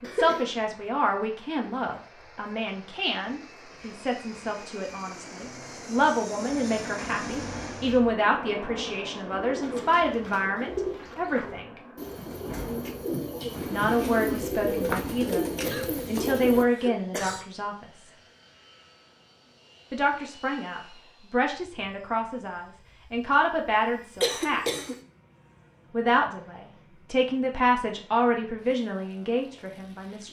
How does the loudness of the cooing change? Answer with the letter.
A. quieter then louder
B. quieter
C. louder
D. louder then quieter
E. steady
C.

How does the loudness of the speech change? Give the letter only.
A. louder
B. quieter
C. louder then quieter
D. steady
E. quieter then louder
D.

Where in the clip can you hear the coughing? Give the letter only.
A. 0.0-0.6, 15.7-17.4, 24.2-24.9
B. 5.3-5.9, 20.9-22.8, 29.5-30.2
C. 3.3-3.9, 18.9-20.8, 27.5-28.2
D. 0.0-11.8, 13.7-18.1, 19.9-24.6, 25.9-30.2
A.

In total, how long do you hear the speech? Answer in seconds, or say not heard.
25 s.